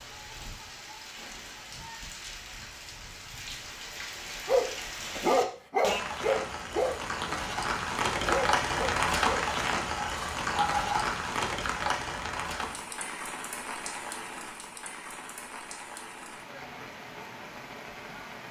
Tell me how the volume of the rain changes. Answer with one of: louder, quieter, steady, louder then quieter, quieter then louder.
louder then quieter.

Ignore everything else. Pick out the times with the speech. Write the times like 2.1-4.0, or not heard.
not heard.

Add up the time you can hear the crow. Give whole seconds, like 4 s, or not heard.
not heard.